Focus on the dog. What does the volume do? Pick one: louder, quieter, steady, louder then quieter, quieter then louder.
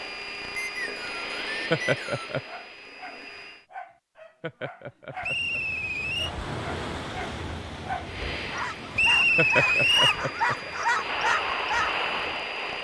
louder.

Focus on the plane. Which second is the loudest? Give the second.
12 s.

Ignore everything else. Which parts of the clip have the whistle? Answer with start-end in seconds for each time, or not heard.
0.6-2.4, 5.2-6.3, 8.9-10.2.